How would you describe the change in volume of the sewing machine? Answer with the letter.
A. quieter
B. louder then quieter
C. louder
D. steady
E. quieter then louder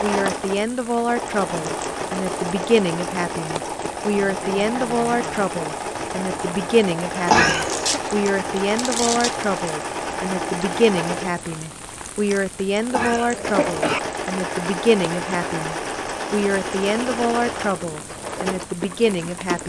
D.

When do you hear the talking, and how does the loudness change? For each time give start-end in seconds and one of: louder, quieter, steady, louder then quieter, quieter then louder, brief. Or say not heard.
0.0-19.6 steady.